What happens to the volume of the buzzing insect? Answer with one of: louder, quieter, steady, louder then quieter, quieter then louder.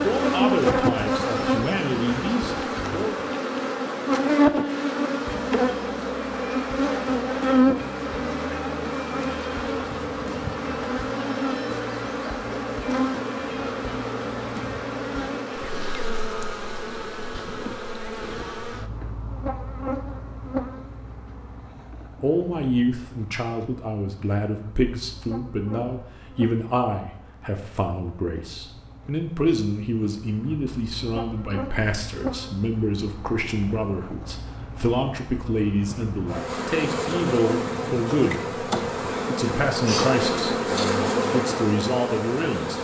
quieter then louder.